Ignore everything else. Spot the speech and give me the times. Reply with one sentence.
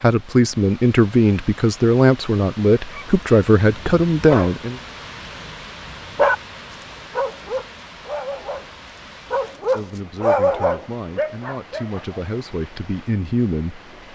The speech can be heard from 0.0 to 4.8 s and from 9.8 to 14.1 s.